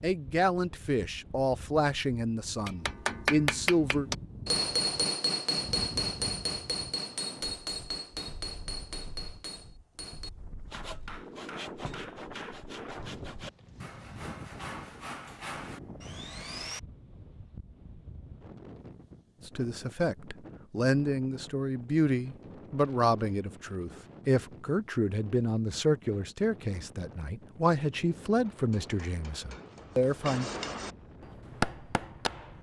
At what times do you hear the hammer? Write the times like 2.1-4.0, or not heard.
2.6-12.9, 28.5-32.5.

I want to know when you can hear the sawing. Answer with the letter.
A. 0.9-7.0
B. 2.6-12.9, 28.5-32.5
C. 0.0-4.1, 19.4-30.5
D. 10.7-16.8
D.